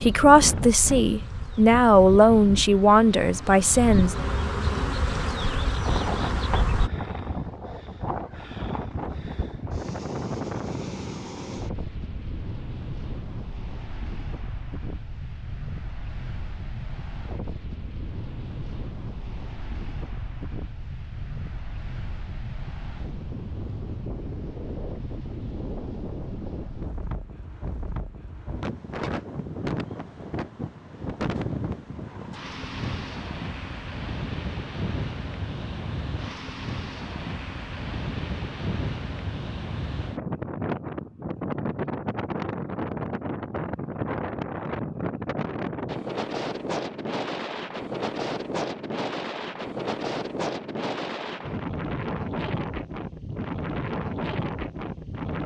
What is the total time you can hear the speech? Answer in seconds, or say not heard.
4 s.